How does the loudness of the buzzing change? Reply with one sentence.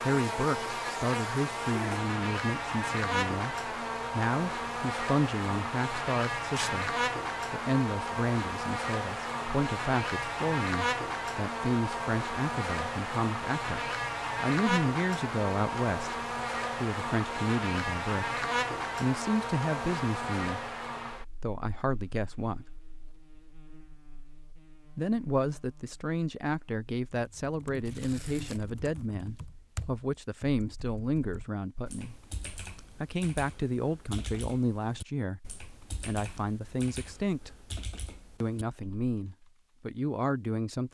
The volume of the buzzing goes down.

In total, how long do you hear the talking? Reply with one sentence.
You can hear the talking for 36 seconds altogether.